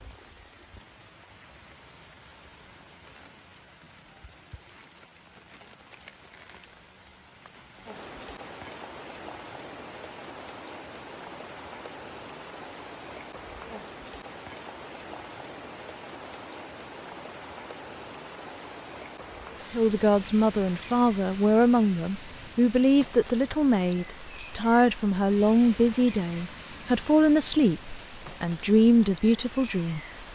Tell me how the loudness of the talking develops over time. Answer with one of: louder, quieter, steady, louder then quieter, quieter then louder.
steady.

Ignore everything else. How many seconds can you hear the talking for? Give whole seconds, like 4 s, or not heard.
10 s.